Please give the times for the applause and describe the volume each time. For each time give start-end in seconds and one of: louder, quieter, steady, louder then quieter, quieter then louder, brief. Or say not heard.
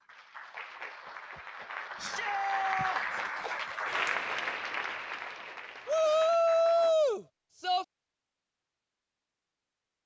0.0-7.0 louder then quieter.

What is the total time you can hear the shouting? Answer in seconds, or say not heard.
3 s.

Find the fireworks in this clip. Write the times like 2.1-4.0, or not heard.
not heard.